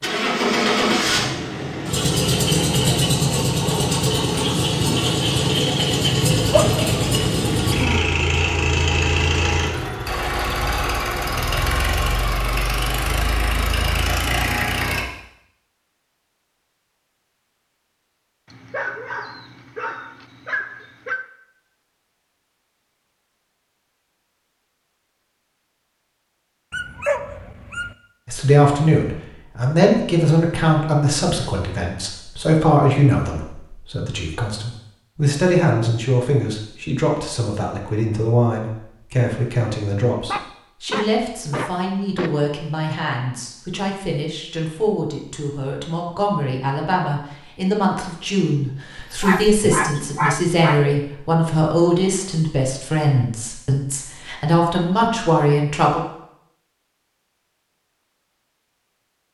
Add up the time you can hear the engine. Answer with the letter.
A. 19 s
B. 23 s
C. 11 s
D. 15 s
D.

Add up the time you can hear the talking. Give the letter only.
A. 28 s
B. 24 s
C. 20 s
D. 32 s
A.